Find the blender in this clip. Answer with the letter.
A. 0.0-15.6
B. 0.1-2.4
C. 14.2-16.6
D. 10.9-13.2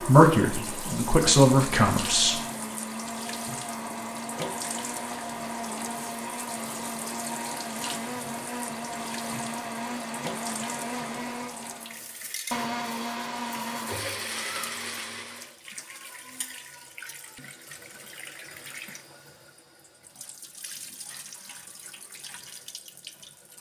A.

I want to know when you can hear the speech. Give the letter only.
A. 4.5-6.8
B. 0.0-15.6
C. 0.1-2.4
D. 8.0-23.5
C.